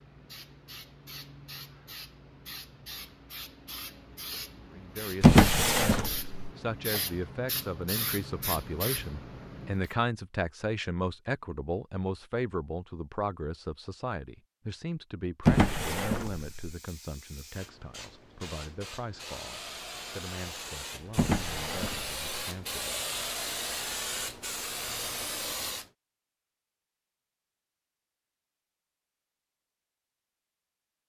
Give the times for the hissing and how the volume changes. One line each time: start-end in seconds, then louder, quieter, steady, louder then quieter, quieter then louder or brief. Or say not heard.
0.0-9.9 louder
16.1-25.9 louder.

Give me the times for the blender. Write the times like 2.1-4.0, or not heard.
not heard.